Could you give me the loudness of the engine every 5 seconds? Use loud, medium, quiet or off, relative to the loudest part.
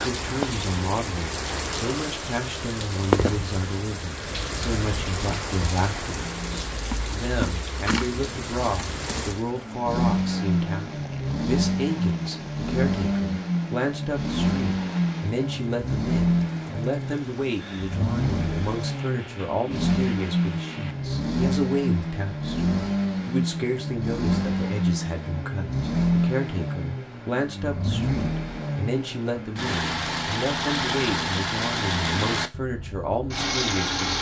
off, medium, loud, loud, loud, loud, loud.